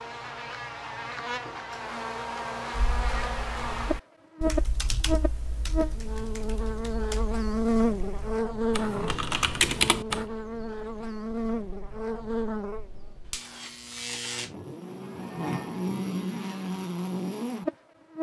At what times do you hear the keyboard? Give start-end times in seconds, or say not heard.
2.7-10.2.